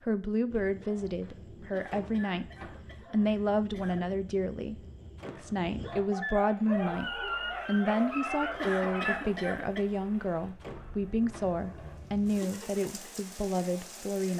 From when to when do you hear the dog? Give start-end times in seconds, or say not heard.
0.5-9.2.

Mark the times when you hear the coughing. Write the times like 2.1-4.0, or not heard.
1.7-4.1, 8.6-9.8.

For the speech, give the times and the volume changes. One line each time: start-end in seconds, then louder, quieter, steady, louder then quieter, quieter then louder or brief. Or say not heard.
0.1-2.5 brief
3.1-14.3 steady.